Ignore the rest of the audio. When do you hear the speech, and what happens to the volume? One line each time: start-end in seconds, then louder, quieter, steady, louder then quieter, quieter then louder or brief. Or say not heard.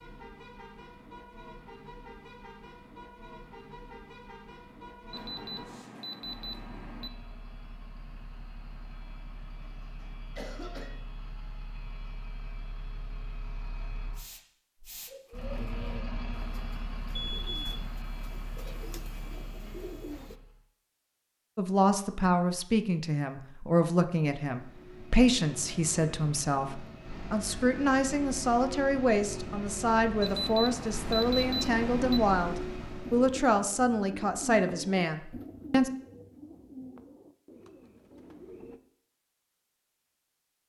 21.6-35.9 steady.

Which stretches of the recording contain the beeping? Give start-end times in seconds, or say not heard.
5.1-7.1, 17.1-17.9, 30.2-32.2.